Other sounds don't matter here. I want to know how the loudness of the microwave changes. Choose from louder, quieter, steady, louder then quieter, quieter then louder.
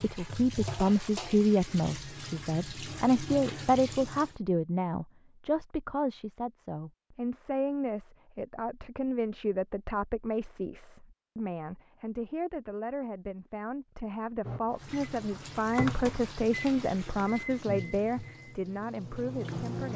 louder then quieter.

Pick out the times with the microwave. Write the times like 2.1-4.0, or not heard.
14.4-19.9.